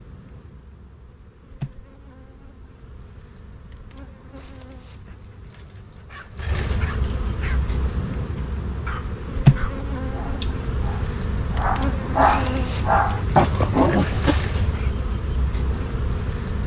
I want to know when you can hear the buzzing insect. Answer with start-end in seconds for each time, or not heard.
0.0-16.6.